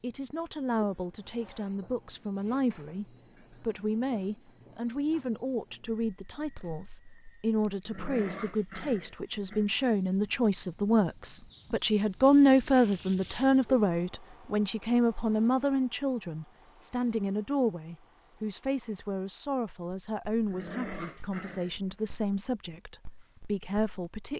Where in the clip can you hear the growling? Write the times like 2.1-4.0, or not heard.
7.8-9.7, 20.4-21.9.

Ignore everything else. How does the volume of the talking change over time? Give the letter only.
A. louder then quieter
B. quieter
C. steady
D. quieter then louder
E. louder
A.